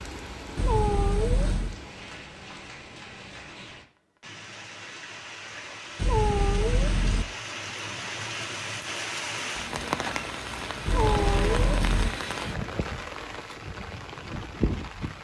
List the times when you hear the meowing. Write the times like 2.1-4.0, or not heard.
0.6-1.8, 6.0-7.2, 10.8-12.1.